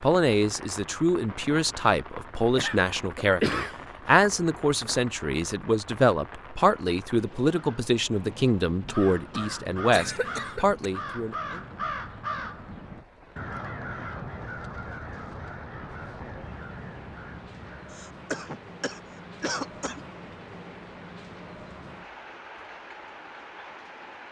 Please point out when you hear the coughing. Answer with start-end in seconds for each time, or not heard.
2.5-3.8, 8.8-10.9, 17.9-20.0.